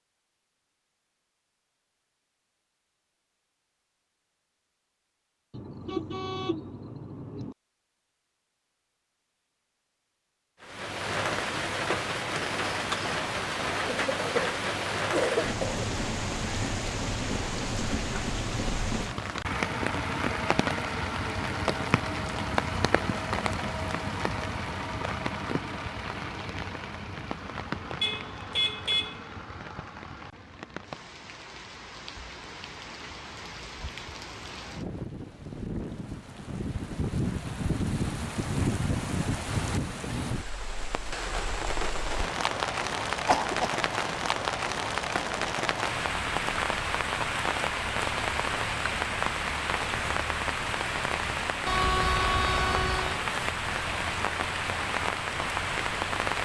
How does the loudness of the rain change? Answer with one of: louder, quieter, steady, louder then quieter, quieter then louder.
quieter then louder.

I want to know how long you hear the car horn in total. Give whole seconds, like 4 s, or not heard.
5 s.